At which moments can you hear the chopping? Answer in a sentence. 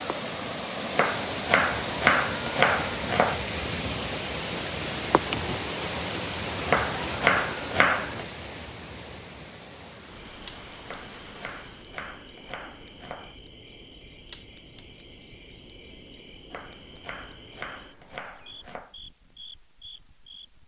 You can hear the chopping from 0.9 to 3.4 s, from 6.7 to 8.2 s, from 10.8 to 13.3 s and from 16.5 to 18.9 s.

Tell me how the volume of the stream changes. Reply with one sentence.
The loudness of the stream goes down.